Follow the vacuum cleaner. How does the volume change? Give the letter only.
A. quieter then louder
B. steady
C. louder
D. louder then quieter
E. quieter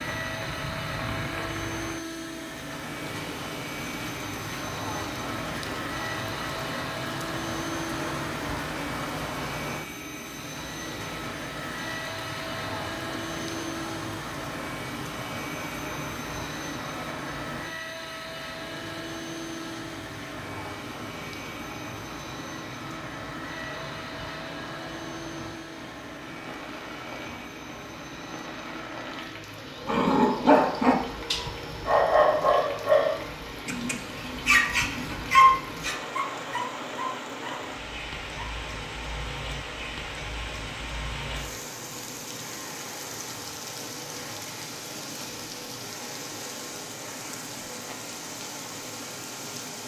E.